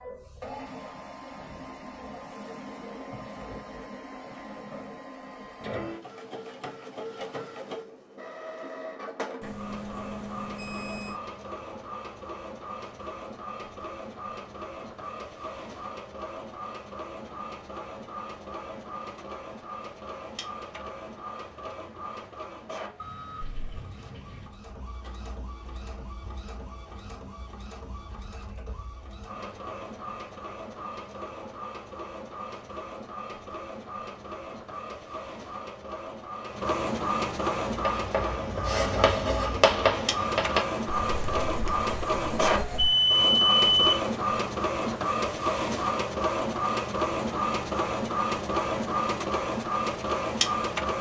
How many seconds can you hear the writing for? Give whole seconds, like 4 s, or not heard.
5 s.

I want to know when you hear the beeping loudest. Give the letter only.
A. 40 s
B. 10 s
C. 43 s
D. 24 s
C.